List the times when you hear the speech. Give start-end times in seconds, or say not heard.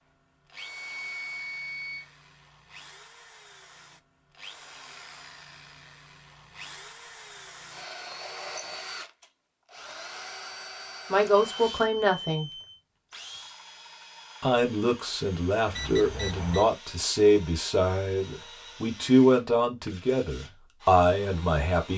11.1-12.5, 14.4-21.9.